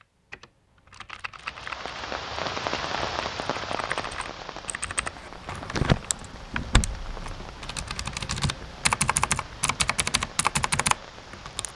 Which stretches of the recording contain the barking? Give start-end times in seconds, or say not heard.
not heard.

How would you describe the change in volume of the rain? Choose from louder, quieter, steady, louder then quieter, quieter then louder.
quieter.